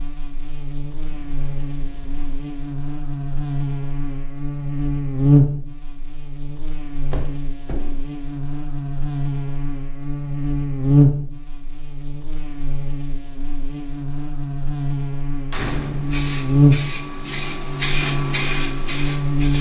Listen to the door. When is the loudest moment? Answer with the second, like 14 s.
16 s.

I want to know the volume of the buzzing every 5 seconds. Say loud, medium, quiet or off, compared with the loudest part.
medium, loud, loud, loud.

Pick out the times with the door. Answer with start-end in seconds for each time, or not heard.
1.0-2.4, 7.1-7.9, 15.5-16.2.